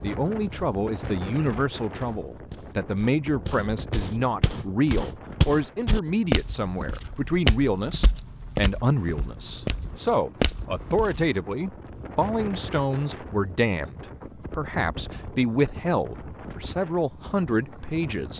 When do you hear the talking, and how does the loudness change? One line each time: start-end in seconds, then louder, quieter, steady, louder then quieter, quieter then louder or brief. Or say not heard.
0.0-18.3 steady.